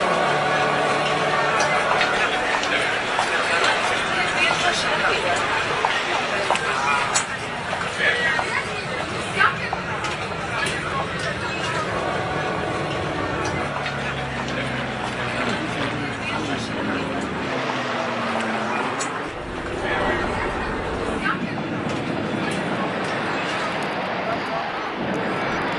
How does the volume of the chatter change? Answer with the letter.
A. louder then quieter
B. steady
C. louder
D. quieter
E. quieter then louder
D.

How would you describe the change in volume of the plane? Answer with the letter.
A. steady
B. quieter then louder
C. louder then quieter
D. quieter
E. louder
E.